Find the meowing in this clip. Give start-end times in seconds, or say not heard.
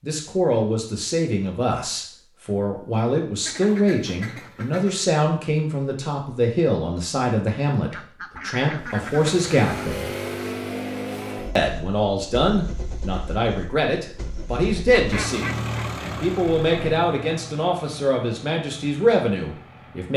not heard.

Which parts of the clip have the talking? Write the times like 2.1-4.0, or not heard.
0.0-10.1, 11.6-20.1.